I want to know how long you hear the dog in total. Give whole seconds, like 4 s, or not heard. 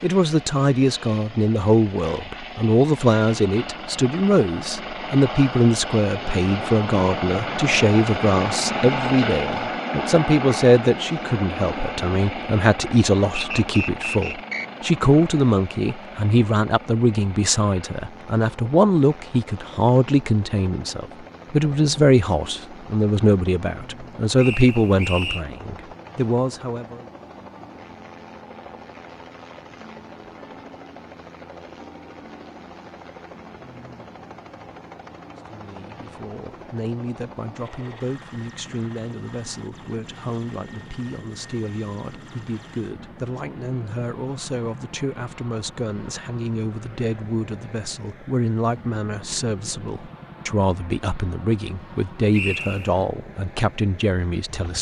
not heard.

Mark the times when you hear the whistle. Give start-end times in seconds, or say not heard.
13.3-14.7, 24.4-25.4, 52.3-53.0.